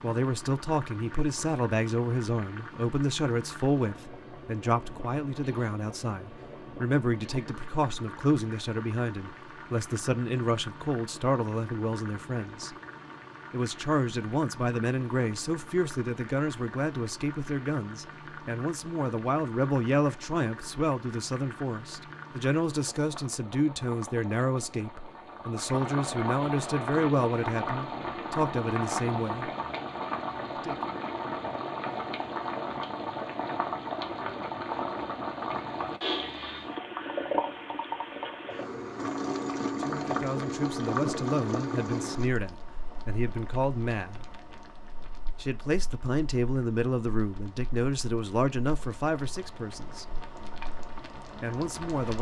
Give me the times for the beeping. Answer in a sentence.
You can't hear the beeping here.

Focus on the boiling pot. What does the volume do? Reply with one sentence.
The volume of the boiling pot goes up, then down.